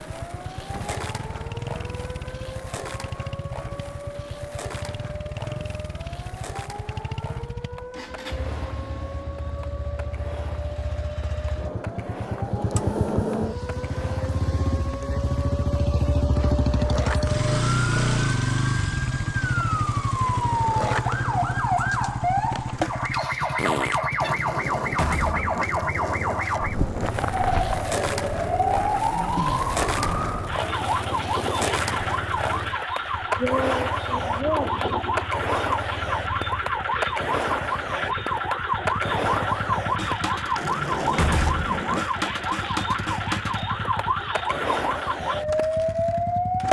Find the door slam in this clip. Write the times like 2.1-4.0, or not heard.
0.6-1.0, 24.9-25.6, 41.0-41.8.